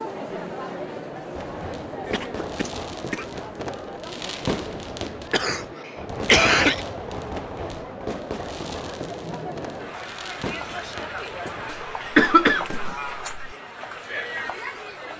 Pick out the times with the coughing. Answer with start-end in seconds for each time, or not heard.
2.1-3.2, 5.3-6.8, 11.7-13.4.